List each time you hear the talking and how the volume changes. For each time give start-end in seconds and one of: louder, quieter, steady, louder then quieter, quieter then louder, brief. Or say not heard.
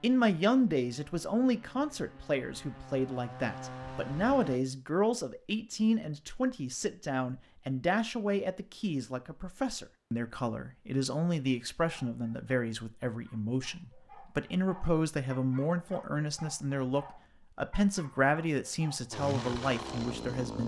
0.0-20.6 steady.